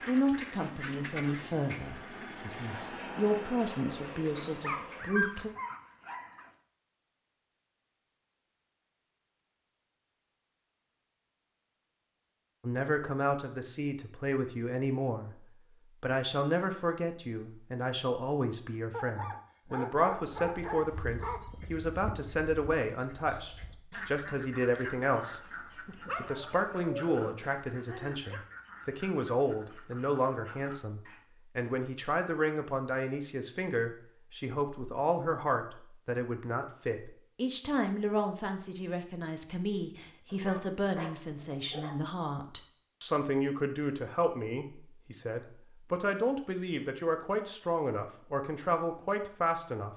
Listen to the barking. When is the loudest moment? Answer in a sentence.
The loudest moment of the barking is at 5 seconds.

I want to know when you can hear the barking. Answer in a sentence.
The barking can be heard from 4.5 to 6.5 s, from 18.9 to 21.4 s, from 25.9 to 28.4 s and from 40.3 to 42.0 s.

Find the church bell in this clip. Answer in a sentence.
You can't hear the church bell here.